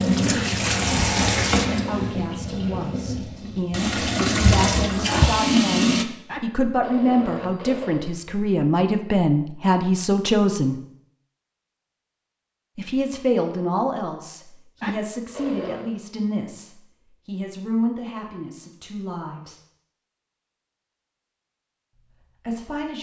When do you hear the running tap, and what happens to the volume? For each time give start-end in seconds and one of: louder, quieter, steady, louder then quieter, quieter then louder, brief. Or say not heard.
0.0-6.0 quieter then louder.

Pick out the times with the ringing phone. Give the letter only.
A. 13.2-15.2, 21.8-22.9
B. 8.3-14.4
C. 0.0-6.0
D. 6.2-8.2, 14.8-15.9
D.